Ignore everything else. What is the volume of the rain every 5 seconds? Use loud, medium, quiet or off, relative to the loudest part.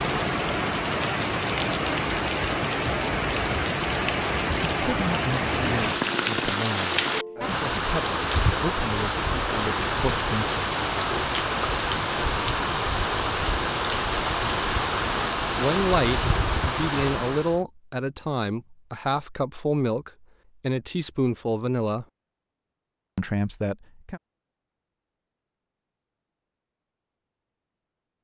loud, loud, loud, loud, off, off.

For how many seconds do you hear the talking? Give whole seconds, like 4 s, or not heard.
13 s.